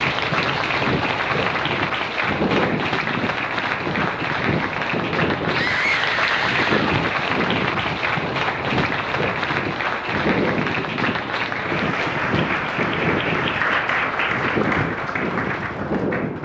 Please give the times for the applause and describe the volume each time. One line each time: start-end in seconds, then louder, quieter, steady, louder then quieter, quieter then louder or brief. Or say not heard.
0.0-16.4 steady.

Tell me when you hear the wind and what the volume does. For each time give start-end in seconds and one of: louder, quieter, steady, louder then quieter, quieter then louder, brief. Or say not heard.
0.0-16.4 steady.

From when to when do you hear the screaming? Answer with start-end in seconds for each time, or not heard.
5.5-7.0.